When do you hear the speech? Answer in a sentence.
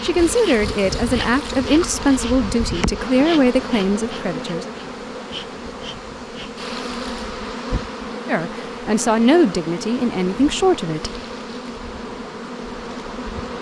The speech can be heard from 0.0 to 4.7 s and from 8.2 to 11.1 s.